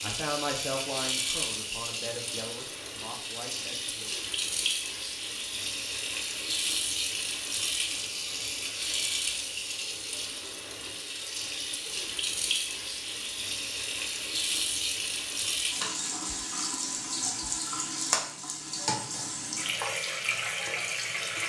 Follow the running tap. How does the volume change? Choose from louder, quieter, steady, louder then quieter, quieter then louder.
steady.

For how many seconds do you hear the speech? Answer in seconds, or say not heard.
4 s.